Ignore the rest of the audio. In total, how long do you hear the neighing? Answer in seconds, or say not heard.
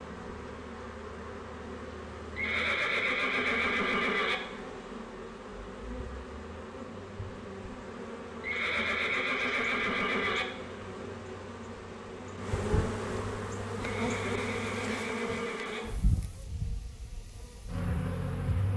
6 s.